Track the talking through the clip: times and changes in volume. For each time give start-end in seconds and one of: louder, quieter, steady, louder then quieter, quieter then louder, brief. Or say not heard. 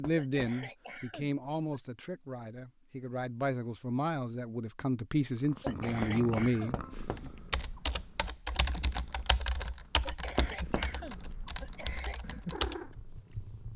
0.0-7.3 quieter then louder.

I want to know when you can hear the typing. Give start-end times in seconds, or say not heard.
7.2-12.9.